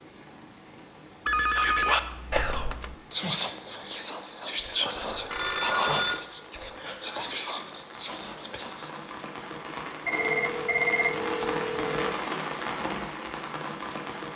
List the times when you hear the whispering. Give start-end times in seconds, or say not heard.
1.4-9.2.